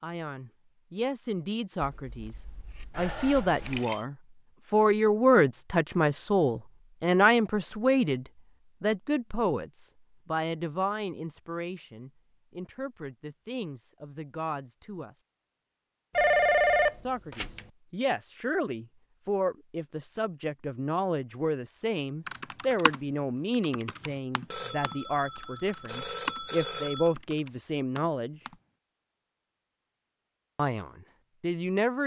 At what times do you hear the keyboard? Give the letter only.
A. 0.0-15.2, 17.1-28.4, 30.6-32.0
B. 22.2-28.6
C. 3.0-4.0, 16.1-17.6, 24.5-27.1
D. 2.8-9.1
B.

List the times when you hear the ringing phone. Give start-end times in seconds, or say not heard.
3.0-4.0, 16.1-17.6, 24.5-27.1.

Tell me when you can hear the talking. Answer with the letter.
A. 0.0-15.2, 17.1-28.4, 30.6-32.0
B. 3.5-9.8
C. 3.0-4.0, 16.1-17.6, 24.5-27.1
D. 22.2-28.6
A.